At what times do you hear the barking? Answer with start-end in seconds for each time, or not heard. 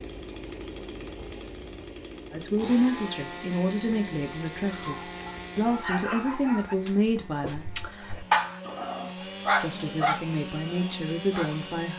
4.7-11.6.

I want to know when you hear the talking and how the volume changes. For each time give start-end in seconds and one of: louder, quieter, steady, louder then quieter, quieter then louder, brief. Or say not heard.
2.3-7.7 quieter then louder
9.6-11.9 brief.